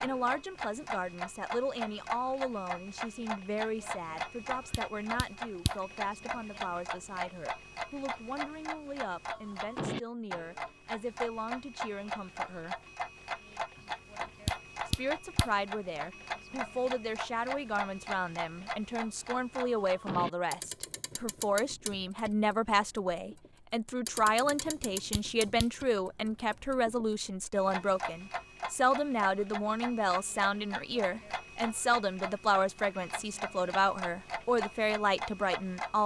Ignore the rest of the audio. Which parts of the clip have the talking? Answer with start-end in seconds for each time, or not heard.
0.0-12.8, 14.8-36.0.